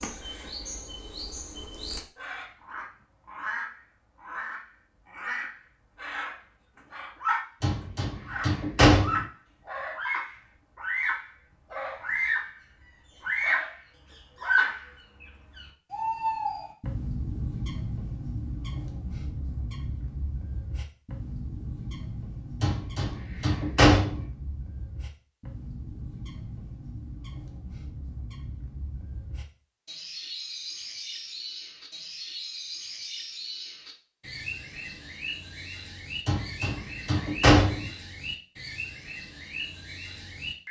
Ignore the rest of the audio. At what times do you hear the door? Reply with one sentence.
The door can be heard from 7.6 to 9.2 s, from 22.6 to 24.2 s and from 36.2 to 37.9 s.